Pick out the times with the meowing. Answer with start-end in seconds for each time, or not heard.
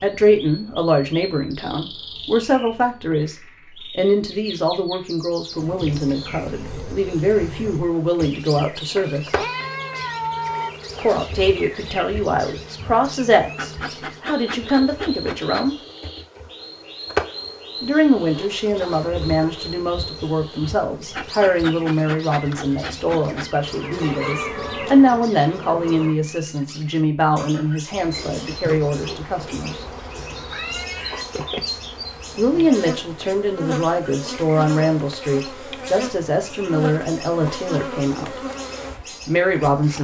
8.8-10.8, 23.6-25.0, 30.4-31.6.